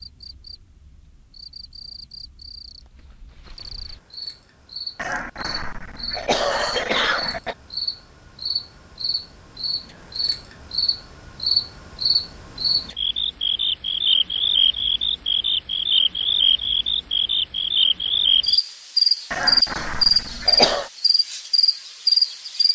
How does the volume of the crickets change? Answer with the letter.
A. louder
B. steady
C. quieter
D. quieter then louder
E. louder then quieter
A.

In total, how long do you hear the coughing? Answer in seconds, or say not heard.
4 s.